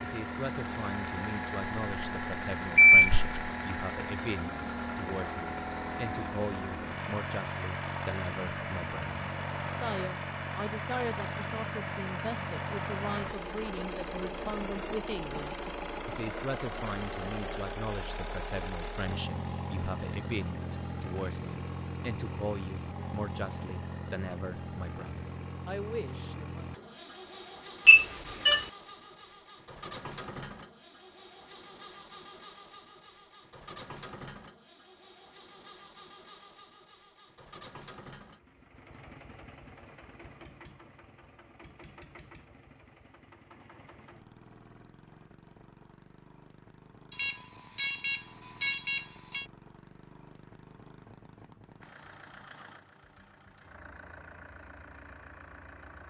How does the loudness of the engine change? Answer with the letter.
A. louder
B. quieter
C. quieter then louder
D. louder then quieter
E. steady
B.